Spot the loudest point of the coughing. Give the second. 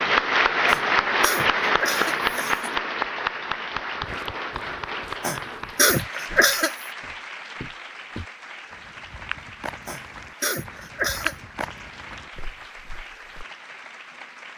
6 s.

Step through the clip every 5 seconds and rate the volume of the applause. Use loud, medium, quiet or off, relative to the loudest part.
loud, quiet, quiet.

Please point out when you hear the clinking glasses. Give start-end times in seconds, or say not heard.
not heard.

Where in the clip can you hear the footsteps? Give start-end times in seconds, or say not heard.
4.0-13.4.